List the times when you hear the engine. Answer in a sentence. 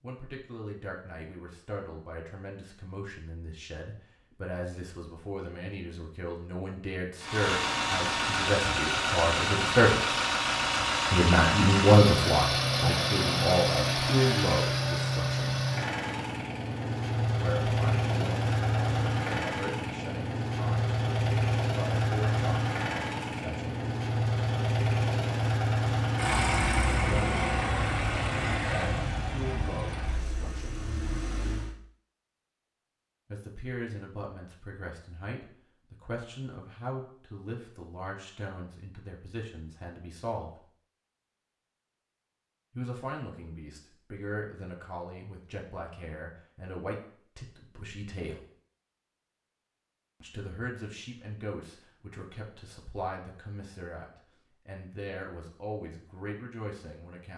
The engine can be heard from 7.2 to 31.8 s.